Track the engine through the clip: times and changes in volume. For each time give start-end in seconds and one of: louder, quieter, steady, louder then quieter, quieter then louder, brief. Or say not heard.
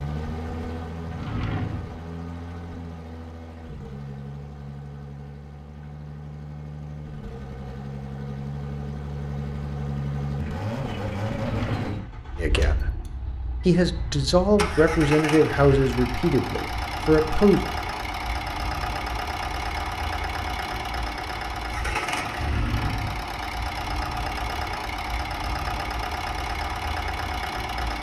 0.0-27.9 louder.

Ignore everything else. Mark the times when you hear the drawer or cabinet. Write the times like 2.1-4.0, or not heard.
1.1-2.0, 11.2-12.2, 22.4-23.3.